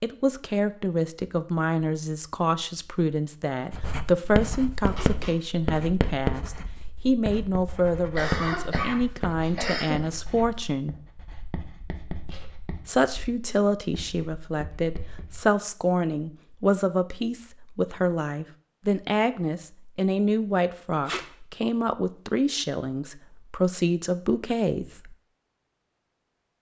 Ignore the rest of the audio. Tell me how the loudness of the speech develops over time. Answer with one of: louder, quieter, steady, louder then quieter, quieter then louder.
steady.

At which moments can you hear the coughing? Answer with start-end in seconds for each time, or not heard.
8.2-10.1.